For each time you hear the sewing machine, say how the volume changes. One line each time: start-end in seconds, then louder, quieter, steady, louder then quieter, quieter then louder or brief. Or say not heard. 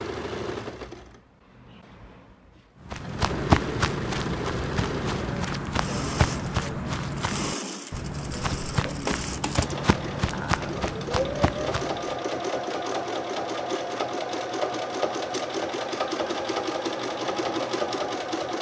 0.0-18.5 louder.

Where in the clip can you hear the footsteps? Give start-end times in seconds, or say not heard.
2.9-12.2.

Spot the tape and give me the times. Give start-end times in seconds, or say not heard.
not heard.